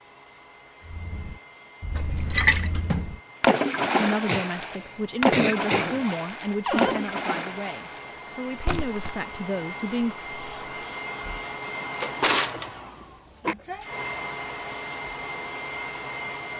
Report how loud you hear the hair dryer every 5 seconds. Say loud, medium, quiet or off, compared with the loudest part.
quiet, medium, loud, loud.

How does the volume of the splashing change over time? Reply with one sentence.
The loudness of the splashing goes down.